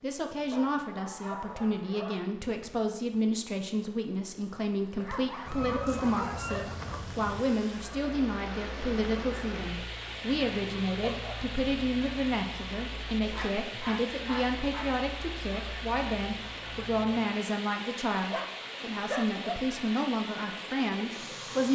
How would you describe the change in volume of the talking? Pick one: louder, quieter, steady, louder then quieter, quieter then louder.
steady.